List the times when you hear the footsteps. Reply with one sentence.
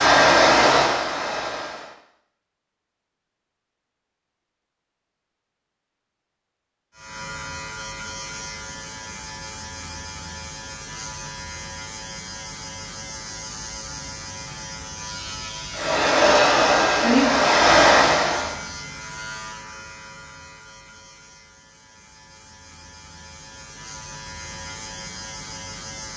The footsteps can't be heard in this clip.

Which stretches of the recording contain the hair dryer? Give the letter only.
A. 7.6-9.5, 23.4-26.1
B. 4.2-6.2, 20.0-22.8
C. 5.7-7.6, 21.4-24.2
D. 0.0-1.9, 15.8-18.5
D.